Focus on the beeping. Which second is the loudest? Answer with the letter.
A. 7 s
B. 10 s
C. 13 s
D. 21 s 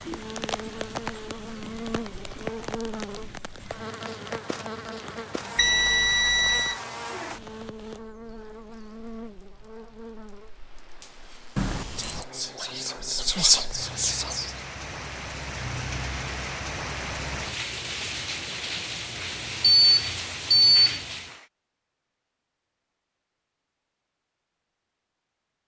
D.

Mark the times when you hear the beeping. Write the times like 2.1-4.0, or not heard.
5.5-6.8, 11.6-12.2, 19.8-21.0.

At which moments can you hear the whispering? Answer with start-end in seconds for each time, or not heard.
11.9-14.5.